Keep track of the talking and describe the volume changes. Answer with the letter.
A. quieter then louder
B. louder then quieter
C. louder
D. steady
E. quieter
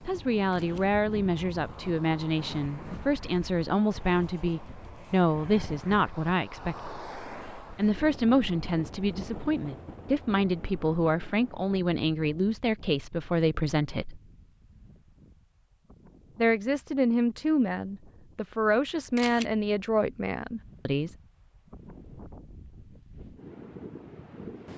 D.